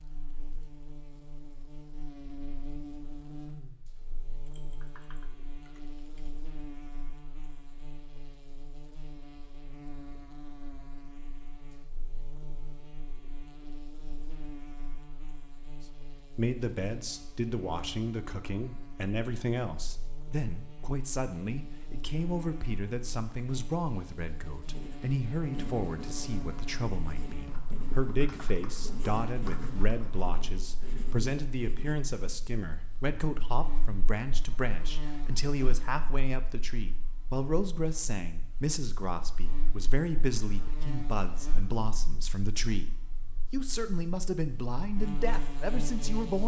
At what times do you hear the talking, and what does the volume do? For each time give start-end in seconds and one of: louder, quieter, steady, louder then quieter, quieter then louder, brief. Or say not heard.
16.2-42.9 steady
43.5-46.4 brief.